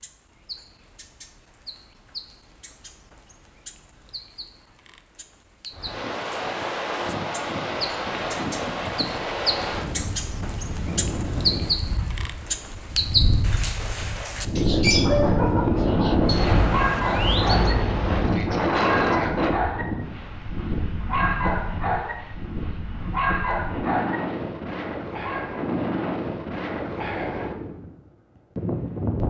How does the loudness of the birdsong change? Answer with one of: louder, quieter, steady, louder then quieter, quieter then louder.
louder.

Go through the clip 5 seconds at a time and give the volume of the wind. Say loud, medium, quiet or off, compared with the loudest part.
off, medium, medium, loud, medium, medium.